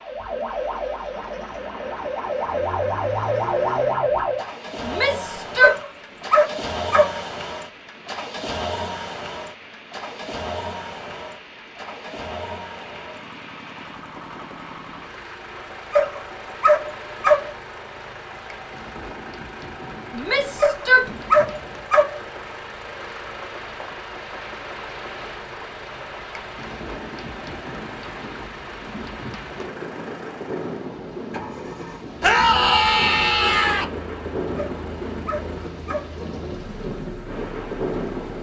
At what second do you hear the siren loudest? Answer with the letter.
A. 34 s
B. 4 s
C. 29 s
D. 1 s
B.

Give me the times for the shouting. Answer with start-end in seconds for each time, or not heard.
4.8-5.8, 20.1-21.1, 32.2-33.9.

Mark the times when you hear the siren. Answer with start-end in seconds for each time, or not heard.
0.0-4.5.